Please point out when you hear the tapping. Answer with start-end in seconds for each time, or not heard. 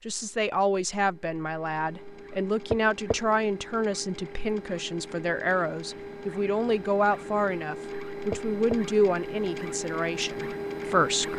2.7-3.1, 8.3-8.8.